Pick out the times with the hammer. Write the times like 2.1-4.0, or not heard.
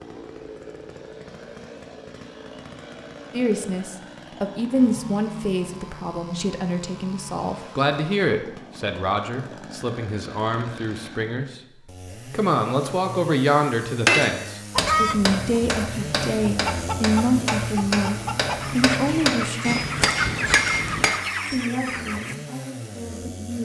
14.1-21.2.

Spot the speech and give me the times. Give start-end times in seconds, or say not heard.
3.3-19.8, 21.5-23.6.